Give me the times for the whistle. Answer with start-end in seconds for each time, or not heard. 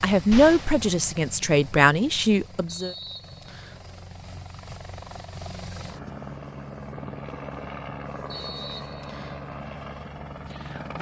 2.6-3.8, 8.3-9.4.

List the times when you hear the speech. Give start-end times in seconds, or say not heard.
0.0-3.0.